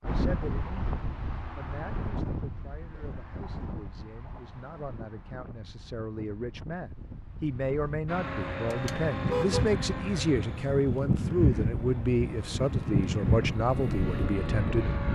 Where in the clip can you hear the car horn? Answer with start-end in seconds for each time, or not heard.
8.7-9.8.